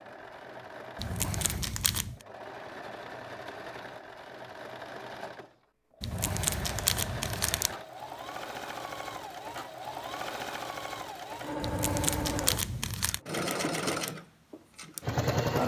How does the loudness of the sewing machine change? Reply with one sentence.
The loudness of the sewing machine goes up.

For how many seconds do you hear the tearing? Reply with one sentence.
You can hear the tearing for 5 seconds altogether.